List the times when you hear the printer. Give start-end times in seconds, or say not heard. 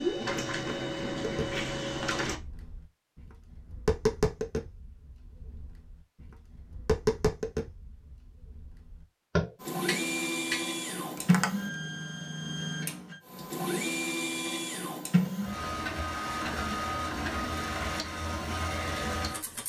0.0-2.4, 9.6-19.6.